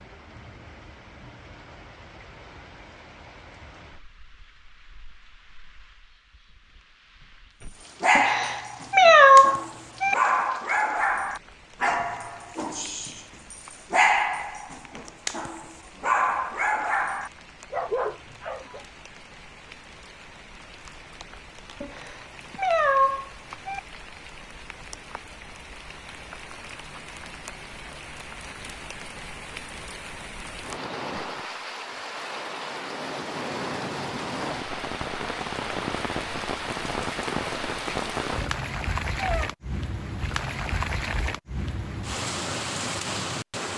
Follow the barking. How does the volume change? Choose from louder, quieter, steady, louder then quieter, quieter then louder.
steady.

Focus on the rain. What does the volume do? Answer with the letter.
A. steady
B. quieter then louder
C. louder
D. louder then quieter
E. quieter
C.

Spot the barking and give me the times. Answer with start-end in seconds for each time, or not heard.
8.0-18.8.